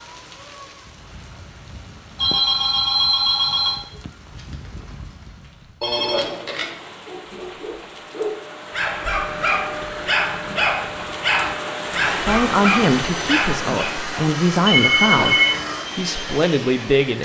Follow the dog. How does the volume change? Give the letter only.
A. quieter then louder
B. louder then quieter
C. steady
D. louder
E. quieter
D.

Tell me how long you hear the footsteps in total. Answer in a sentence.
The footsteps can't be heard in this clip.